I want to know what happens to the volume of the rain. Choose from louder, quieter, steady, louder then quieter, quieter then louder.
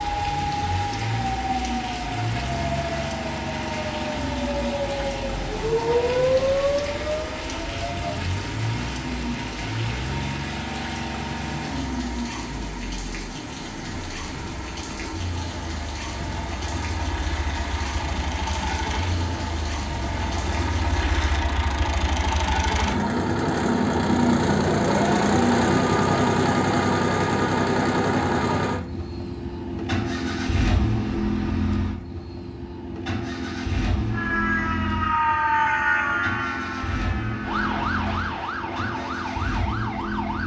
steady.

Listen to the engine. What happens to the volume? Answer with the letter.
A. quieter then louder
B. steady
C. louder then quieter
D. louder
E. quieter
C.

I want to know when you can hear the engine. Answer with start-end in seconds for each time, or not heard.
0.0-40.4.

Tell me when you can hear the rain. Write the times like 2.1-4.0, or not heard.
0.0-21.4.